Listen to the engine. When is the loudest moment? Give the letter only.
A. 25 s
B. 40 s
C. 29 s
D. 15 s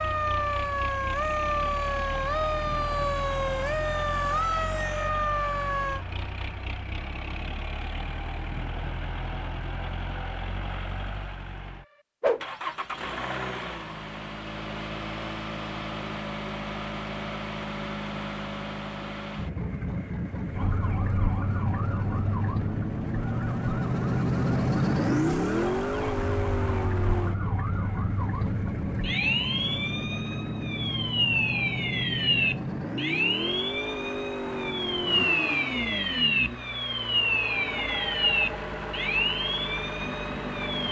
A.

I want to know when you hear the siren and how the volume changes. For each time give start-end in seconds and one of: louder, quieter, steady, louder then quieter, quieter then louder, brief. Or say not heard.
0.0-6.0 steady
20.5-40.8 louder.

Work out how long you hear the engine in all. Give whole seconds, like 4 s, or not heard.
41 s.